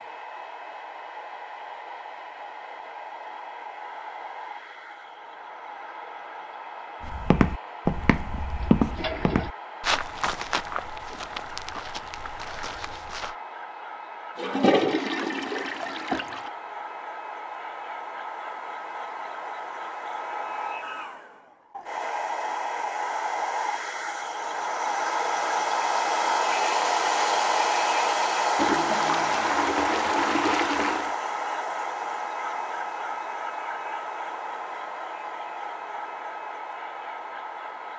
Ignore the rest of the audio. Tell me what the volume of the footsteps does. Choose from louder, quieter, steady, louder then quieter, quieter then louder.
quieter.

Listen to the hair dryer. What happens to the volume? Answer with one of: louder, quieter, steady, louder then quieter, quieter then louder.
louder then quieter.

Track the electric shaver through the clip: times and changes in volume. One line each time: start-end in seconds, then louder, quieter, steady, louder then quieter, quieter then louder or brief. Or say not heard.
not heard.